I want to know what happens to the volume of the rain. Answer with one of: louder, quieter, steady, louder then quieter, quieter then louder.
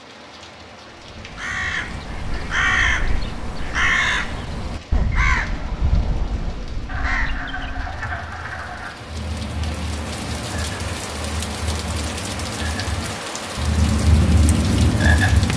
louder.